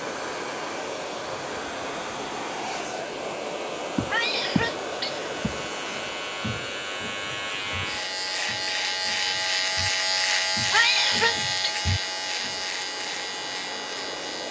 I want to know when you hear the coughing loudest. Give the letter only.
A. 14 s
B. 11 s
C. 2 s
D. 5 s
B.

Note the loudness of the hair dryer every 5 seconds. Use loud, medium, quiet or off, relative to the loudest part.
loud, medium, medium.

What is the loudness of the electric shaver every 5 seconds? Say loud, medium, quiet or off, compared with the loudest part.
quiet, loud, loud.